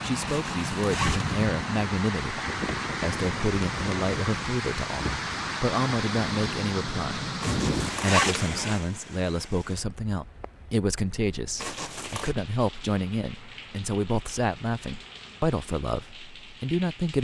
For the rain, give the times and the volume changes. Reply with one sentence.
You can hear the rain from 0.0 to 17.1 s, getting quieter.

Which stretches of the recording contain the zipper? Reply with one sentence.
The zipper can be heard from 0.2 to 1.4 s, from 7.4 to 8.5 s and from 11.6 to 12.3 s.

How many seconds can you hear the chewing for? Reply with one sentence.
The chewing can't be heard in this clip.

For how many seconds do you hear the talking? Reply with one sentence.
You can hear the talking for 16 seconds altogether.